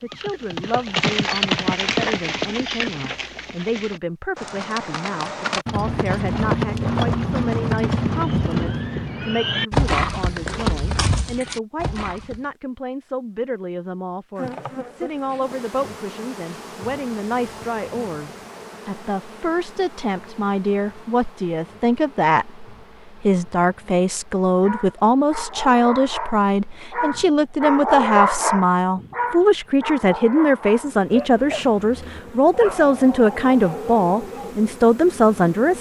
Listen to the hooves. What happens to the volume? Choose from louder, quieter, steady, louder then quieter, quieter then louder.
quieter then louder.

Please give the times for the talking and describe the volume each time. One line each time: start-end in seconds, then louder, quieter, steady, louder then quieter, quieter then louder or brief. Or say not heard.
0.0-35.7 louder.